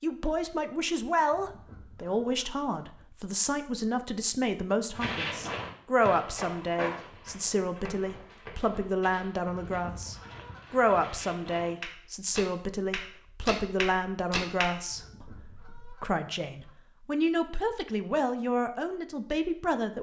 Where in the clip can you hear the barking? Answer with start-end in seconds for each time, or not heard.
not heard.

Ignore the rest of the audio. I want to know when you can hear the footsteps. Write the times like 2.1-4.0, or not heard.
5.0-14.8.